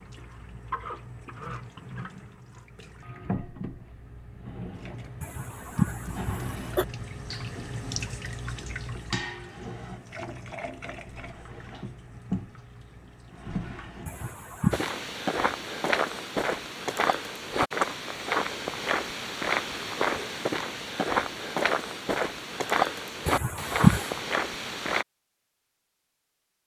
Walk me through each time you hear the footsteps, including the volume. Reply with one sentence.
The footsteps can be heard from 14.7 to 25.1 s, at a steady volume.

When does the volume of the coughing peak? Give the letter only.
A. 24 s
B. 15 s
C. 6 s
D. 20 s
A.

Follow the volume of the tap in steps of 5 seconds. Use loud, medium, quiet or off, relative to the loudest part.
loud, loud, loud, off, off, off.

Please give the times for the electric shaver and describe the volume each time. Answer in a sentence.
The electric shaver can't be heard in this clip.